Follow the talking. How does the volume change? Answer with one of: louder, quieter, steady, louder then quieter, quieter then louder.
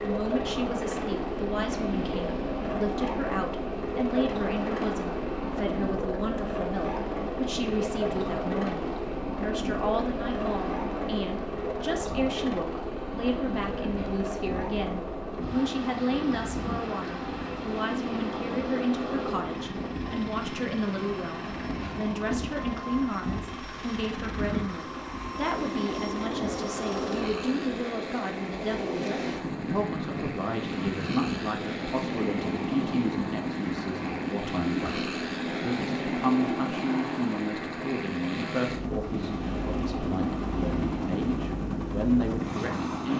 steady.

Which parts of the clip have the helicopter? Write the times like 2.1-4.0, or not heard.
0.0-43.1.